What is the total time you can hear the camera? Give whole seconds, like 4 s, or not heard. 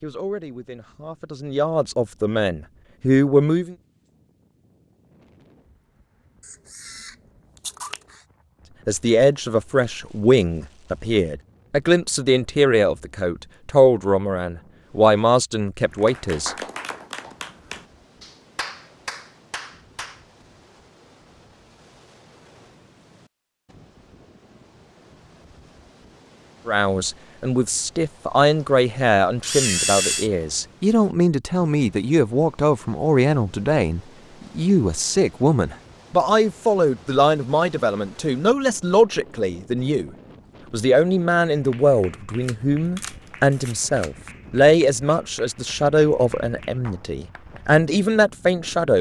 4 s.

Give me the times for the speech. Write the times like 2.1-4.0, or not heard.
0.0-3.8, 8.8-16.6, 26.6-40.1, 40.7-48.9.